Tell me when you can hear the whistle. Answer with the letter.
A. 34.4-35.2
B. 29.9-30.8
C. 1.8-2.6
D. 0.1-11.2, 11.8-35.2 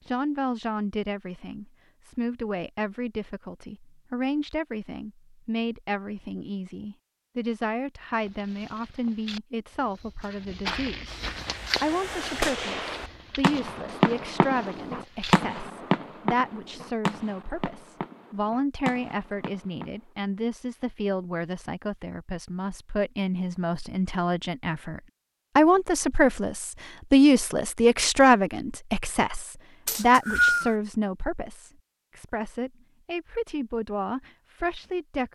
B.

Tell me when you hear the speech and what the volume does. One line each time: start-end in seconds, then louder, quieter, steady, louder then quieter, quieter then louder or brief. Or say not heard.
0.1-11.2 steady
11.8-35.2 louder then quieter.